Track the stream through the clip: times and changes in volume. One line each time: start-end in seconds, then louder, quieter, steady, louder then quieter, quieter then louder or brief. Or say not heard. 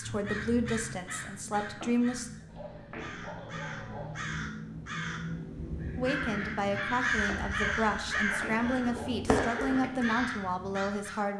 not heard.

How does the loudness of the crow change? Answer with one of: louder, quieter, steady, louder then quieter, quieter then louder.
louder.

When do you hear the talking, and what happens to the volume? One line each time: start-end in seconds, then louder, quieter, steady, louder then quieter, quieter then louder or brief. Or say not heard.
0.0-2.3 brief
6.0-11.3 steady.